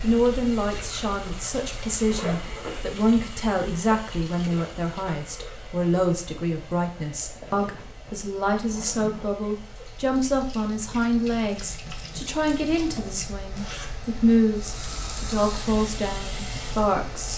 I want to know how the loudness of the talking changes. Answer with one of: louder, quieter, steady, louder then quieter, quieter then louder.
steady.